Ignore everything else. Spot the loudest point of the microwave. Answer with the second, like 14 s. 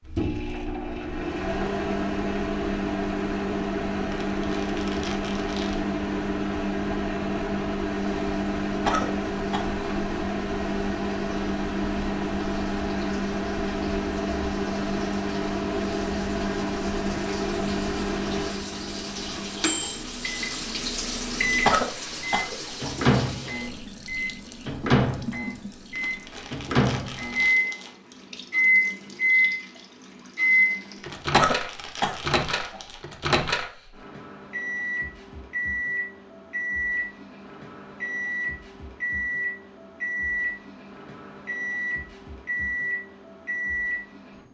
29 s.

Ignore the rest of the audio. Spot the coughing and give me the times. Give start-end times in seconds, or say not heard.
8.8-9.8, 21.6-22.9, 31.3-32.9.